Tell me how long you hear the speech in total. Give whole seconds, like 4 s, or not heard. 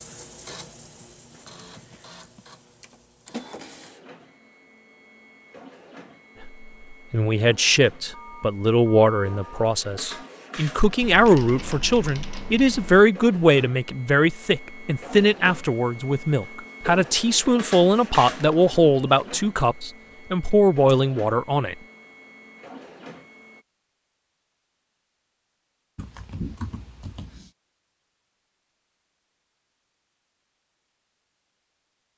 15 s.